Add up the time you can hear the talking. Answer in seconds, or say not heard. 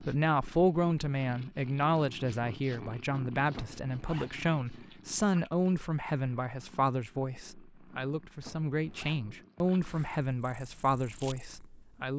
12 s.